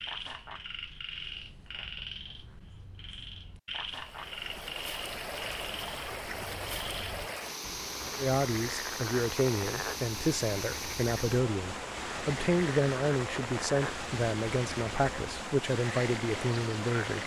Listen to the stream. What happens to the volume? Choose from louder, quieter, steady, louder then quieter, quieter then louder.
steady.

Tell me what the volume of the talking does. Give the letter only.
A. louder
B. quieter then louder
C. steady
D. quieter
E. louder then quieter
C.